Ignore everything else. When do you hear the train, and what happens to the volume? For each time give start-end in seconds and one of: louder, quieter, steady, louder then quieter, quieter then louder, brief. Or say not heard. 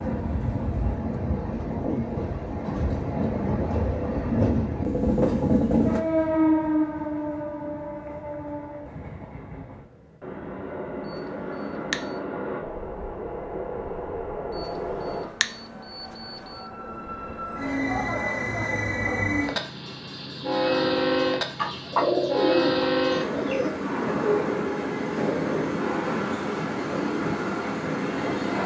0.0-28.6 quieter then louder.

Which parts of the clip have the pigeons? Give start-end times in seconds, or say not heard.
21.6-23.8.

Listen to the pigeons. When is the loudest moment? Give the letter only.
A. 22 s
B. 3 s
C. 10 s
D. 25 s
A.